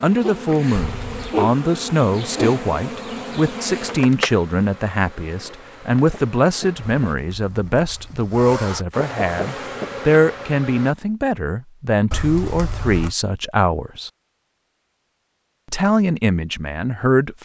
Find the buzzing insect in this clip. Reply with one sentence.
You can hear the buzzing insect from 0.0 to 7.2 s and from 8.9 to 10.9 s.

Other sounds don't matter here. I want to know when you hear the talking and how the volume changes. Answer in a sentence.
You can hear the talking from 0.0 to 14.1 s, at a steady volume; and briefly from 15.7 to 17.4 s.